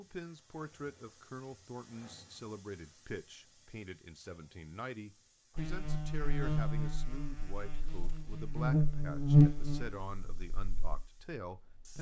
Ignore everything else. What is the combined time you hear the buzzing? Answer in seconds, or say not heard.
6 s.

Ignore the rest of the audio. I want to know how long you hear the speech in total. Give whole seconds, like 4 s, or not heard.
12 s.